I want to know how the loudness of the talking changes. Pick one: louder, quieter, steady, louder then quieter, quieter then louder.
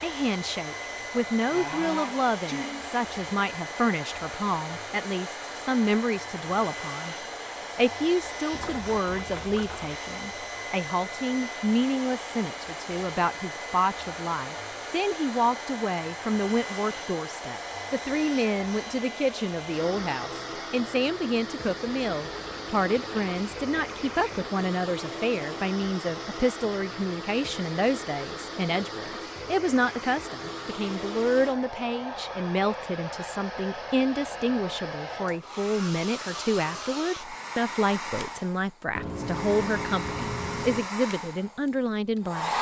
steady.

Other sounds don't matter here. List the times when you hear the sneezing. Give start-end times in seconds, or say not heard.
1.5-3.0.